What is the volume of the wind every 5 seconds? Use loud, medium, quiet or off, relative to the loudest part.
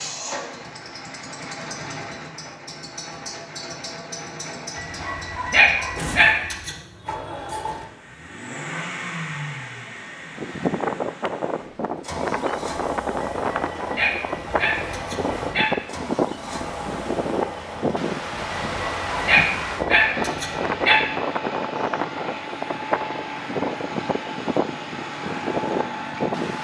off, off, loud, loud, loud, loud.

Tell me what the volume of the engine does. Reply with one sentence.
The loudness of the engine stays about the same.